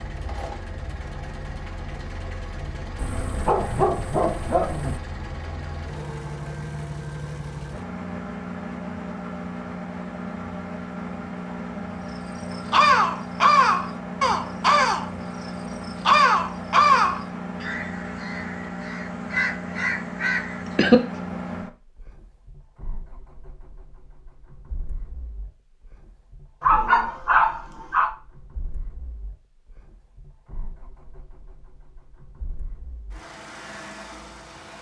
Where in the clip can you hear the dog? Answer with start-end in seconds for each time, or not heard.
3.0-5.0, 26.6-28.1.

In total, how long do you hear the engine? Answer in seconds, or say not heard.
35 s.